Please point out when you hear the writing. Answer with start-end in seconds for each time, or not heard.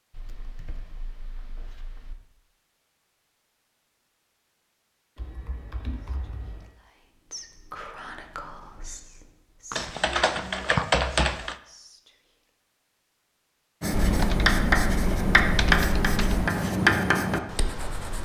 13.8-18.2.